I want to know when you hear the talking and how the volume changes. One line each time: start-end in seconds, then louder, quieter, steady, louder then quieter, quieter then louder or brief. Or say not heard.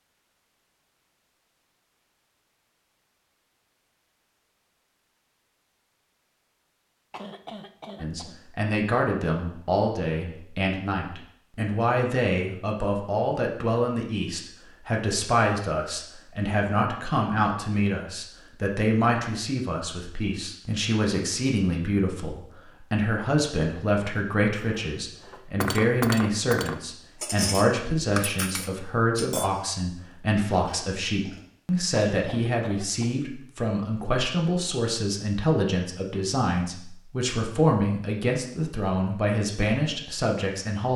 8.0-40.9 steady.